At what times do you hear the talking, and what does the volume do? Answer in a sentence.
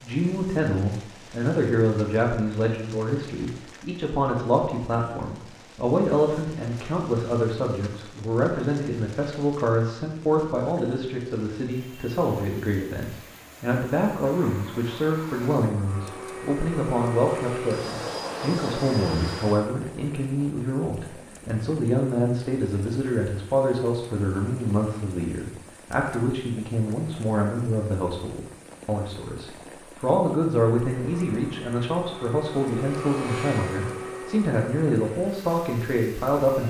You can hear the talking from 0.0 to 36.6 s, at a steady volume.